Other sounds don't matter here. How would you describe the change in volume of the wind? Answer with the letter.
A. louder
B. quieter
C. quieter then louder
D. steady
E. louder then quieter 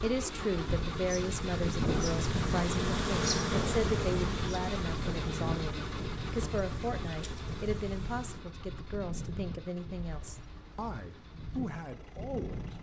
B.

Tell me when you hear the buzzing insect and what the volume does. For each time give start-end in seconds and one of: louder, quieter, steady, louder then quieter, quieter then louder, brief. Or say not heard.
0.2-8.4 louder then quieter.